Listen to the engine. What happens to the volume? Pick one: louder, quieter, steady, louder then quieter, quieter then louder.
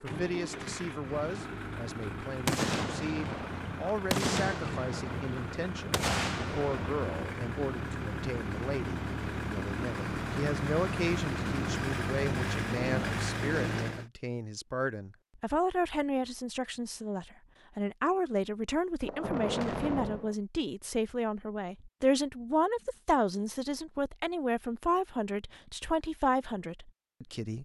louder.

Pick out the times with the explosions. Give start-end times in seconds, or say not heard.
2.5-7.2, 19.0-20.4.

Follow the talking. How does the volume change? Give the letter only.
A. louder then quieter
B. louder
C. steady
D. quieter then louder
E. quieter
B.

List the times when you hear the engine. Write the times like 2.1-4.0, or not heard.
0.0-14.1.